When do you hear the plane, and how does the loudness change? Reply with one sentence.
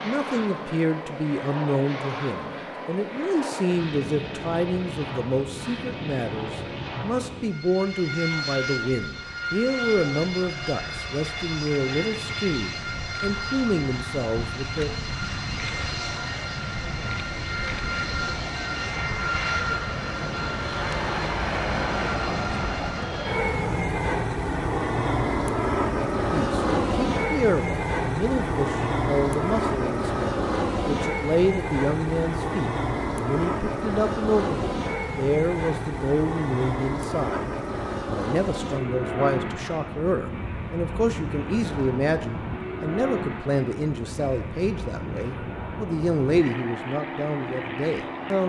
You can hear the plane from 0.0 to 48.4 s, getting louder then quieter.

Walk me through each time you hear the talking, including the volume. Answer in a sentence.
The talking can be heard from 0.0 to 14.9 s, at a steady volume; and from 26.3 to 48.4 s, at a steady volume.